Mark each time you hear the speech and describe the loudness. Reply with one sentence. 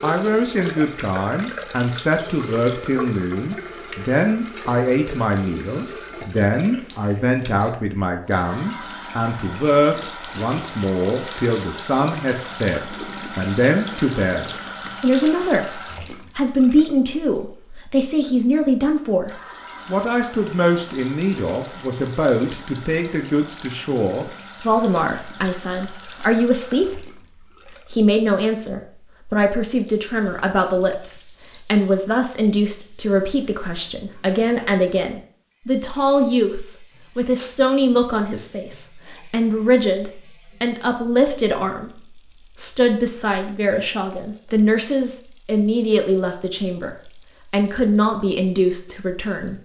You can hear the speech from 0.0 to 27.1 s, at a steady volume; and from 27.9 to 49.6 s, at a steady volume.